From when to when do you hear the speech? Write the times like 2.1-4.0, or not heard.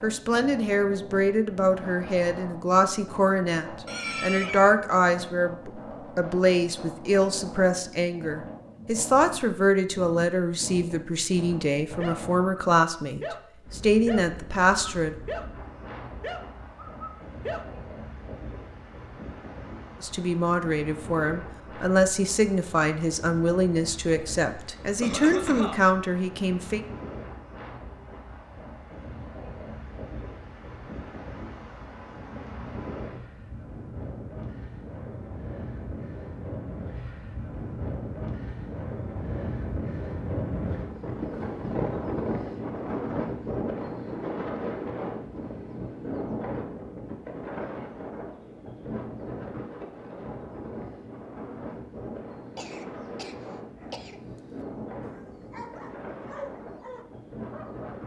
0.0-15.2, 20.0-26.8.